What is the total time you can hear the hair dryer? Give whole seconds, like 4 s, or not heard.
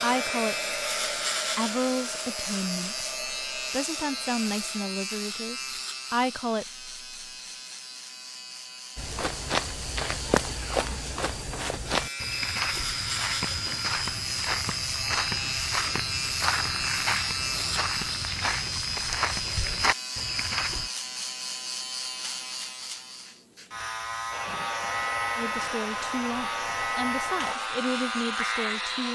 10 s.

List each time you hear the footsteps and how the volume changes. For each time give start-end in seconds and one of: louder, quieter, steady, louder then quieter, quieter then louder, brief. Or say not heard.
8.9-20.9 steady.